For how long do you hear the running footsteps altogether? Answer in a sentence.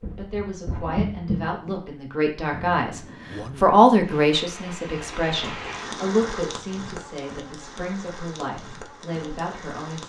You can hear the running footsteps for 2 seconds altogether.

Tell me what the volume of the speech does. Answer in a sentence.
The volume of the speech goes up, then down.